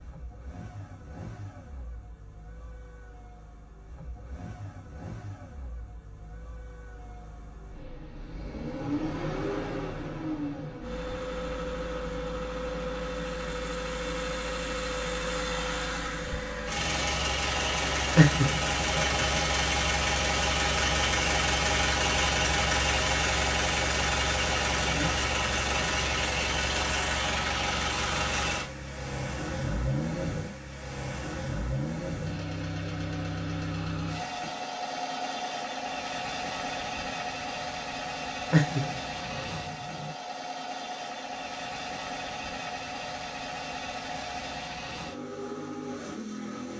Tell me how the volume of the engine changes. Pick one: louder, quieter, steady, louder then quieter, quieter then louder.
louder then quieter.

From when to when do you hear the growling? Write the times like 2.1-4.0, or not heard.
18.1-19.4, 38.5-40.1.